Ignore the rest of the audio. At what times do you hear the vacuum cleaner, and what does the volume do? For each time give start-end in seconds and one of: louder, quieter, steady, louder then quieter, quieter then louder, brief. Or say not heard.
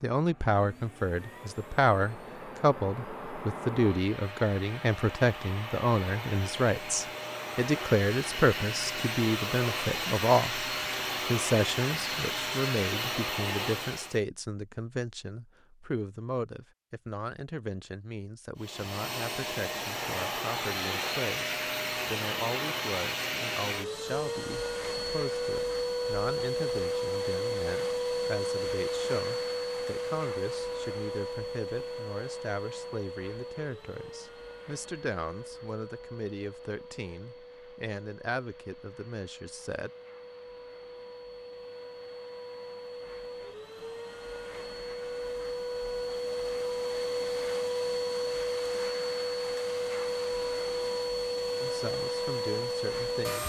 0.1-14.2 louder
18.6-53.4 quieter then louder.